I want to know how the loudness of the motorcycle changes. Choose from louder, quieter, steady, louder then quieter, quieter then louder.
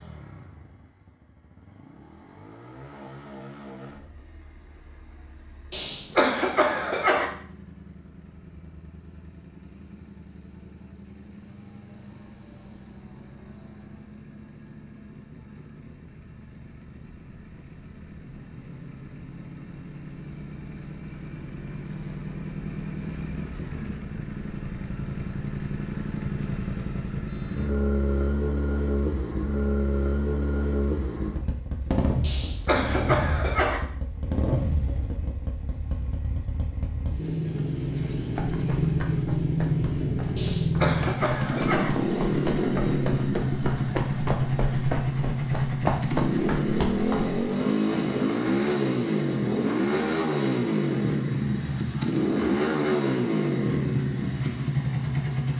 louder.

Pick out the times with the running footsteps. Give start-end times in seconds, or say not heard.
38.3-47.4.